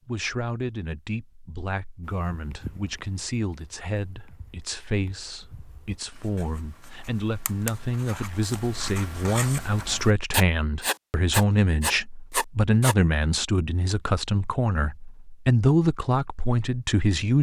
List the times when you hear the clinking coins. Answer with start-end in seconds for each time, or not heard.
not heard.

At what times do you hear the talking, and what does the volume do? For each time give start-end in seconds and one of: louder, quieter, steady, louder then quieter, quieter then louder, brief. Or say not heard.
0.1-17.3 louder.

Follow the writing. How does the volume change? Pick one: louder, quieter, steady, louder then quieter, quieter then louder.
quieter then louder.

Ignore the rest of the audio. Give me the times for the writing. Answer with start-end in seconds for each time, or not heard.
2.0-12.9.